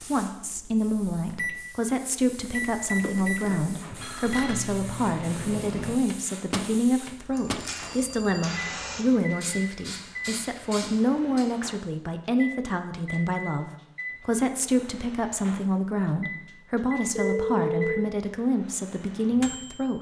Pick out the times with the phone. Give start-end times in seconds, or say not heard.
3.0-4.6, 7.3-8.6, 17.1-18.1.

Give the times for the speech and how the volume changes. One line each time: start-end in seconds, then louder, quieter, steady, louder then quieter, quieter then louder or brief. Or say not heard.
0.1-19.9 steady.